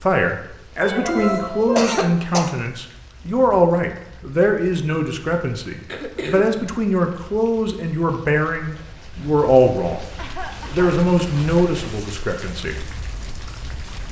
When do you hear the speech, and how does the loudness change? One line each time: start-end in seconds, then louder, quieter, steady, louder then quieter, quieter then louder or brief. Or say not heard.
0.0-12.8 steady.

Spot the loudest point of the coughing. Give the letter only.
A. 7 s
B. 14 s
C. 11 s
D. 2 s
D.